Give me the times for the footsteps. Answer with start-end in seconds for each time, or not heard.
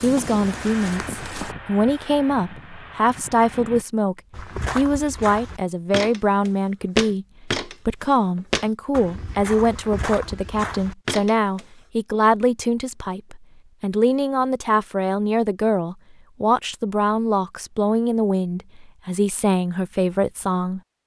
0.0-1.6, 4.3-11.7.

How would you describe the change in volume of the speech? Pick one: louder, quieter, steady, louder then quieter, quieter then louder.
steady.